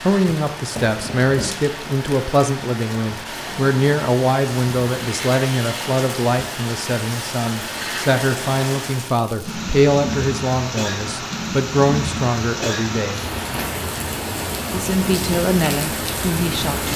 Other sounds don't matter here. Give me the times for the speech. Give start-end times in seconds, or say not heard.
0.0-13.2, 14.7-16.9.